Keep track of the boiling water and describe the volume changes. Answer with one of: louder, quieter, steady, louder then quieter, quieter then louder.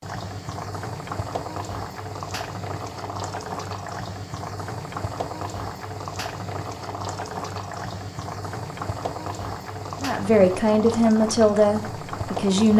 steady.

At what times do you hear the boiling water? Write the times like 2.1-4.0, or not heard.
0.0-12.7.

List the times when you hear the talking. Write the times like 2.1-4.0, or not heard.
10.0-12.7.